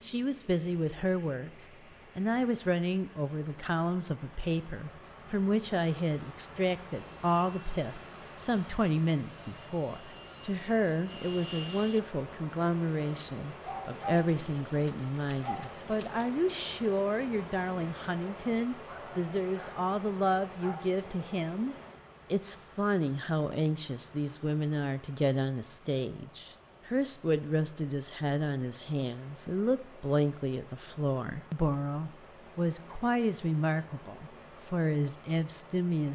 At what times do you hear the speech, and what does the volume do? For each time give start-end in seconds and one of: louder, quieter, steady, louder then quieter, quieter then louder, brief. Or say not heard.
0.0-1.5 brief
2.1-36.1 steady.